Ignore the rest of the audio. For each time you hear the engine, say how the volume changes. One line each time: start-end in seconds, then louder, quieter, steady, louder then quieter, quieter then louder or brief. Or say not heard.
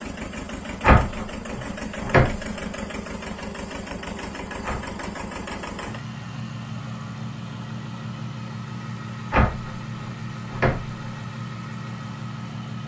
0.0-12.8 steady.